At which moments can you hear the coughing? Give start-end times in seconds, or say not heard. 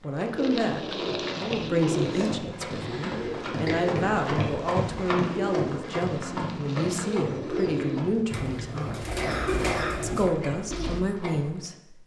1.9-4.0, 9.2-10.5.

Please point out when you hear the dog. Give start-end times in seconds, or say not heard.
not heard.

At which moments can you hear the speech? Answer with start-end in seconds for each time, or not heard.
0.0-9.1, 10.0-12.0.